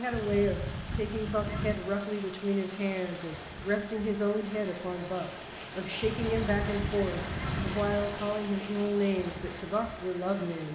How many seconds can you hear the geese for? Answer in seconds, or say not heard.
4 s.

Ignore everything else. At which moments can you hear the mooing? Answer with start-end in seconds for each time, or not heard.
not heard.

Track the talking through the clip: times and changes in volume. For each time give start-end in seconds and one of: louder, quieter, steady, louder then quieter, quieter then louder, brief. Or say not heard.
0.0-10.7 steady.